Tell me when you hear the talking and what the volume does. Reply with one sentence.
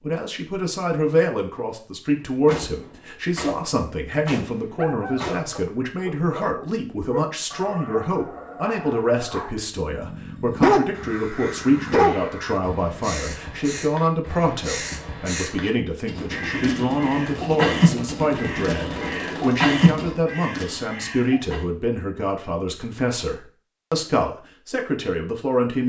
You can hear the talking from 0.0 to 25.8 s, at a steady volume.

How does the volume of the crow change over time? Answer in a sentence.
The loudness of the crow goes up.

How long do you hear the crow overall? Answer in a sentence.
The crow can be heard for 11 seconds in total.